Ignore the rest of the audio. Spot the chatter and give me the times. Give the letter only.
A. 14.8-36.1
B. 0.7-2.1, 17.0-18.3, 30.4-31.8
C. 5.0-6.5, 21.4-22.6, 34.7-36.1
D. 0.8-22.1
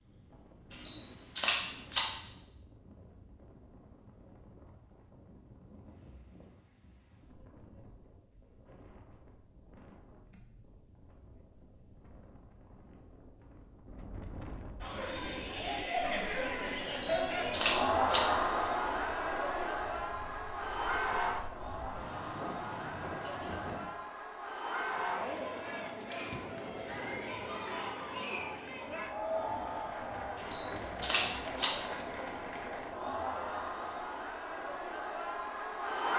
A.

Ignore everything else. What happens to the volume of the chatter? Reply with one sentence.
The loudness of the chatter goes down.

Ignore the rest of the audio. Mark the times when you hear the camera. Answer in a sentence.
You can hear the camera from 0.7 to 2.1 s, from 17.0 to 18.3 s and from 30.4 to 31.8 s.